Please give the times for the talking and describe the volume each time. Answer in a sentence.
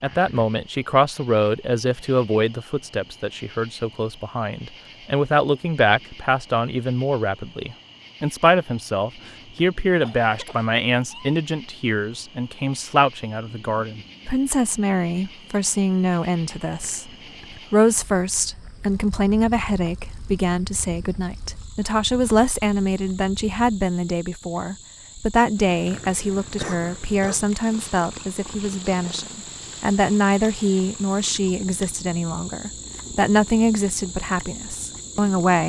You can hear the talking from 0.0 to 17.1 s, at a steady volume; and from 17.7 to 35.6 s, at a steady volume.